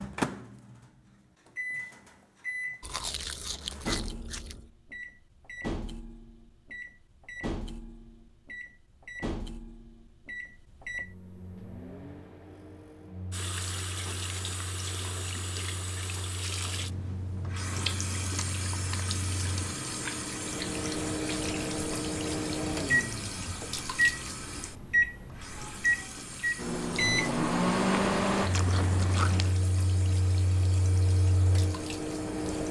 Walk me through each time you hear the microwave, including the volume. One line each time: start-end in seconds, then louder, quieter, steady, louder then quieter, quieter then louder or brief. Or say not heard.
0.0-32.6 quieter then louder.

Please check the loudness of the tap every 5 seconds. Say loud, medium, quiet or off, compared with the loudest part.
off, off, loud, loud, loud, medium, medium.